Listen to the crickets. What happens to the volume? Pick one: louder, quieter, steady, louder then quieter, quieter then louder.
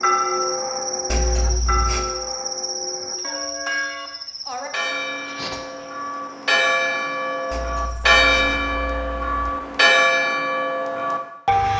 quieter.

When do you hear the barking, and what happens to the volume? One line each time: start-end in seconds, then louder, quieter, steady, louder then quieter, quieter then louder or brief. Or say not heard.
not heard.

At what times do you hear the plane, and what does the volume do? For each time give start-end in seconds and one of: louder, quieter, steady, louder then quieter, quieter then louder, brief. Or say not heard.
not heard.